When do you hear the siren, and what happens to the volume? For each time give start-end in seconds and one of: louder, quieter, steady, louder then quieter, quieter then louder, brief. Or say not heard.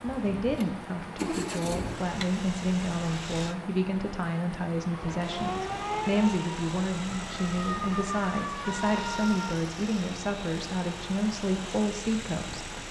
4.9-9.6 quieter then louder.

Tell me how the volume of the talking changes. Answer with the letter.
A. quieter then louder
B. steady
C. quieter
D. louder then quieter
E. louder
B.